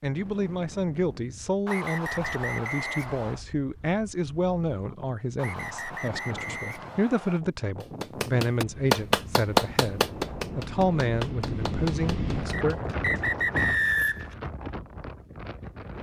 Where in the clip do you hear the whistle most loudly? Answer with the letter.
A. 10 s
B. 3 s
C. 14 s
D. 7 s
C.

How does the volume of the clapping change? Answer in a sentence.
The volume of the clapping goes down.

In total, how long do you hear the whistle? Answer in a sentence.
You can hear the whistle for 6 seconds altogether.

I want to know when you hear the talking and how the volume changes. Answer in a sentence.
The talking can be heard from 0.0 to 12.8 s, at a steady volume.